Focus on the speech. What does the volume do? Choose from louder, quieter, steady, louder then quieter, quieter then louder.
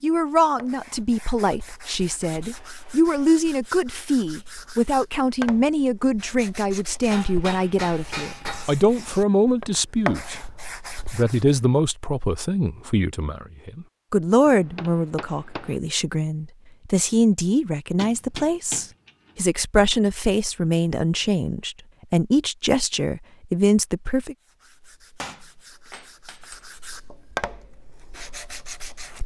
steady.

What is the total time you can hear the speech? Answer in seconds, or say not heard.
24 s.